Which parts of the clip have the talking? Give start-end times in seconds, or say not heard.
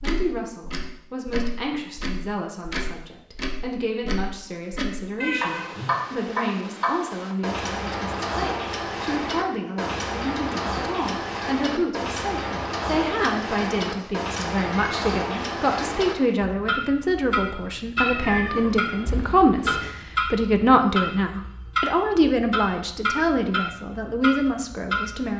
0.0-25.3.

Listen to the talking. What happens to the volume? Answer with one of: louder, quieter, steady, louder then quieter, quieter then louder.
louder.